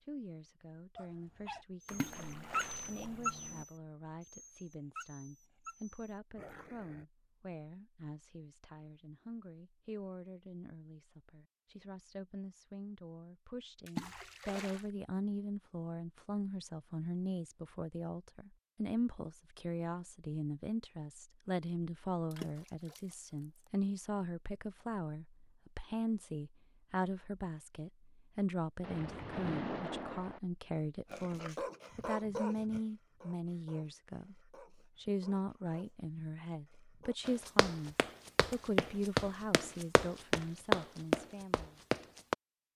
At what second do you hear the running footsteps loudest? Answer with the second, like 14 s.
41 s.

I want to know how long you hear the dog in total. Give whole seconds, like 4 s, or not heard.
12 s.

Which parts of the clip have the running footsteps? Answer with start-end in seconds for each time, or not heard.
37.2-42.4.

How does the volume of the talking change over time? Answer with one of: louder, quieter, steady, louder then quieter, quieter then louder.
louder.